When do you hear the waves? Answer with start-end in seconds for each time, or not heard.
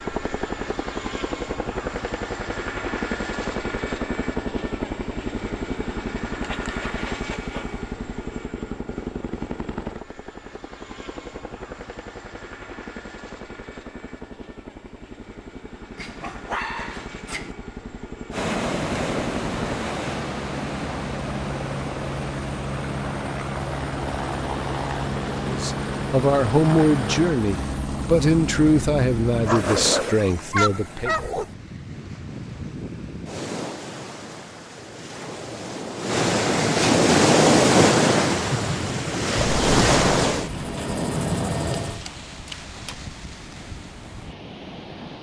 18.3-45.1.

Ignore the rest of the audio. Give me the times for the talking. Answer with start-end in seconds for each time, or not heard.
25.4-31.1.